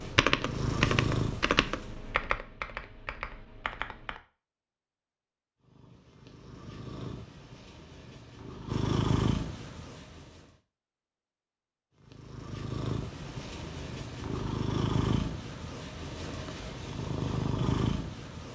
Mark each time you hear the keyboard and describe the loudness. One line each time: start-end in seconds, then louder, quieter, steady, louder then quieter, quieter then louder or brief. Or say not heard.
0.0-4.2 quieter.